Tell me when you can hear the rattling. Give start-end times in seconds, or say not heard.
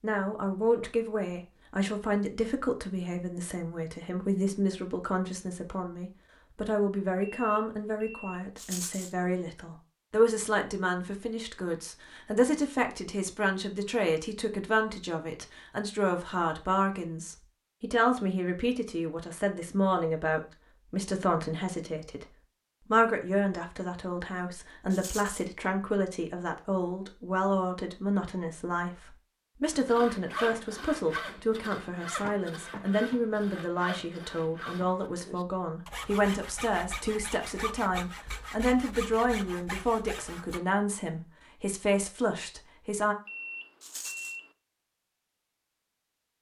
8.6-9.2, 24.9-25.4, 43.8-44.4.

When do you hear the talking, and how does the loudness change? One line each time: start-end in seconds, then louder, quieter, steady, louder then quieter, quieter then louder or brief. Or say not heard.
0.0-22.2 steady
22.9-43.1 steady.